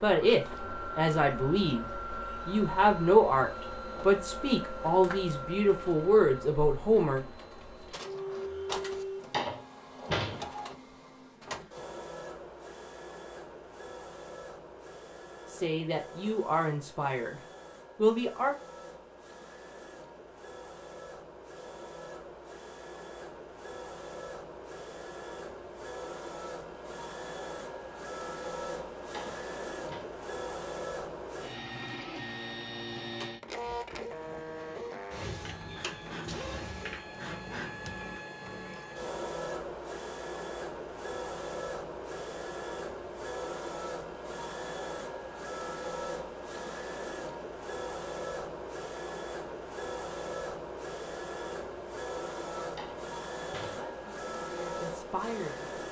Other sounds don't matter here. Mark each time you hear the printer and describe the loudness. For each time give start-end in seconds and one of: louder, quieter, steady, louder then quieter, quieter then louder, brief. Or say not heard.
0.0-55.8 quieter then louder.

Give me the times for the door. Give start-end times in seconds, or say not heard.
9.2-10.4, 29.0-30.1, 52.6-53.9.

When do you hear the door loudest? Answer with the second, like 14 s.
10 s.